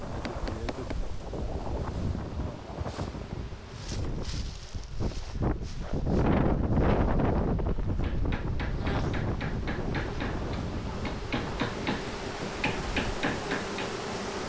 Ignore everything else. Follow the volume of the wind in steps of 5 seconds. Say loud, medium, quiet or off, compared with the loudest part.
medium, loud, medium.